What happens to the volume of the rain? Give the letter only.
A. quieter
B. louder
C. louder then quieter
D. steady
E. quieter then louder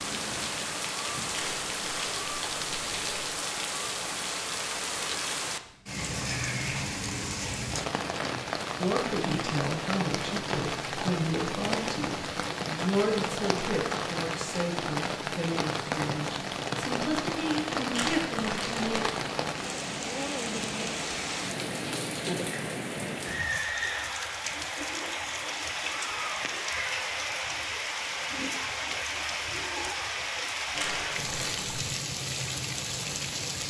D.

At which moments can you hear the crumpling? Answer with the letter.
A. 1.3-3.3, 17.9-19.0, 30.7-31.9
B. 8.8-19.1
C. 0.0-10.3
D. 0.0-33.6
A.